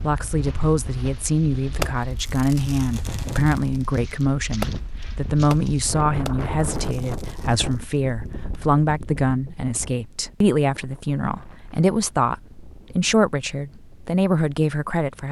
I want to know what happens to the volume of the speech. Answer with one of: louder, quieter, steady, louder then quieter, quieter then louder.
steady.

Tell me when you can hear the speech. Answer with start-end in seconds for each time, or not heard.
0.0-15.2.